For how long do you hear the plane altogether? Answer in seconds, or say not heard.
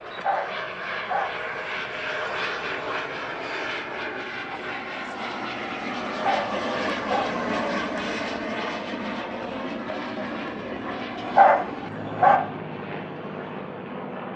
14 s.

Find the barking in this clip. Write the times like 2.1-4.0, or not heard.
0.1-1.2, 6.0-7.2, 11.2-12.4.